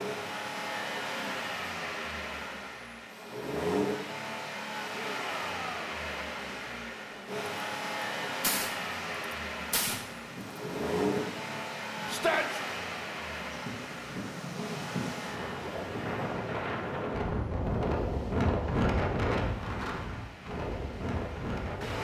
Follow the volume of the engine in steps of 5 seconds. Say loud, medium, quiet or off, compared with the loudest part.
loud, loud, loud, medium, medium.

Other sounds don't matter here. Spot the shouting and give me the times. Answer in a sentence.
You can hear the shouting from 4.9 to 5.8 s and from 12.1 to 12.6 s.